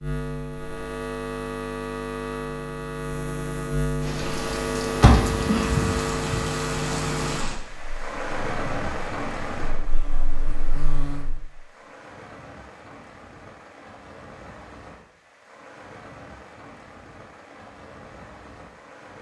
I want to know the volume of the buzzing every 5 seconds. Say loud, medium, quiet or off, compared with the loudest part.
loud, loud, medium, off.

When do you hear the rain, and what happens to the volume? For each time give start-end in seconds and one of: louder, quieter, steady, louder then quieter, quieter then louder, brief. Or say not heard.
4.0-19.1 quieter.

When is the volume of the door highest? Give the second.
5 s.